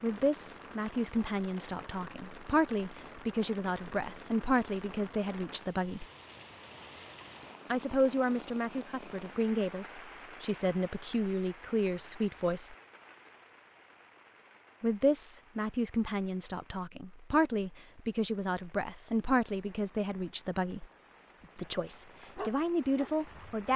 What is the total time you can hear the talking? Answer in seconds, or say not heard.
19 s.